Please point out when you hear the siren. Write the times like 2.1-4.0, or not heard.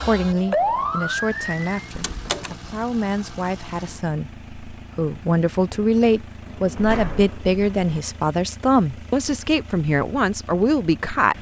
0.0-1.6.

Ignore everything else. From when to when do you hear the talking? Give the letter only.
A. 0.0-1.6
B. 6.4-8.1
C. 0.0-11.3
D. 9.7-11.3
C.